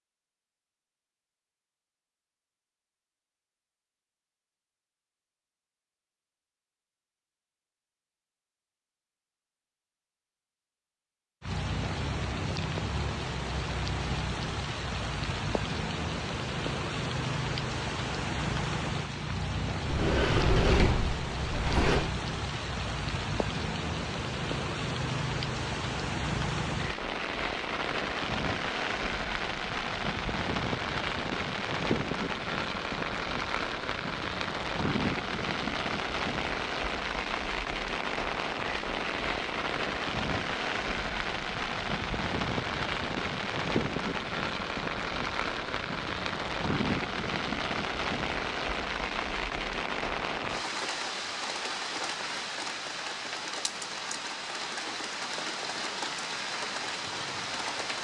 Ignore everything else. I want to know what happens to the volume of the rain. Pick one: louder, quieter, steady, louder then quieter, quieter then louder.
steady.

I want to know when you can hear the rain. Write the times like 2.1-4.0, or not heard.
11.4-57.9.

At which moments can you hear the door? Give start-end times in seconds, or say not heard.
19.9-22.1.